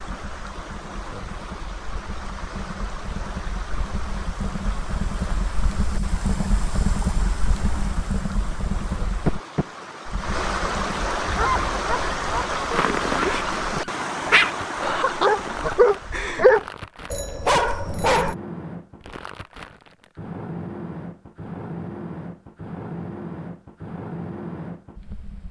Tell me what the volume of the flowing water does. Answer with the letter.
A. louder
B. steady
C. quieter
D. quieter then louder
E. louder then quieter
A.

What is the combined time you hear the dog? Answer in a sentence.
You can hear the dog for 7 seconds altogether.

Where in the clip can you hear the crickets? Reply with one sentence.
You can't hear the crickets here.